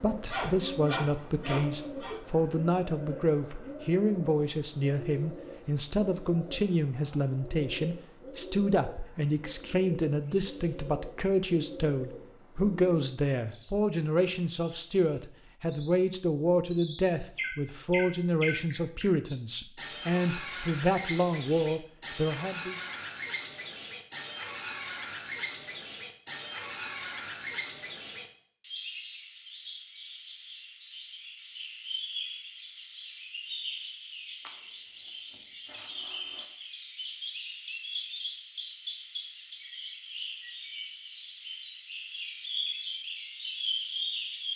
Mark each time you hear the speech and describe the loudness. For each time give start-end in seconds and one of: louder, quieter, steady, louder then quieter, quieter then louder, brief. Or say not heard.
0.0-22.8 steady.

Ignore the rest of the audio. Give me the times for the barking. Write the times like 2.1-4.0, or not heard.
not heard.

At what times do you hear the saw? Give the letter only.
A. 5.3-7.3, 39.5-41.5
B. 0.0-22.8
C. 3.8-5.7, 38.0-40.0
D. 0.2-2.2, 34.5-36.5
D.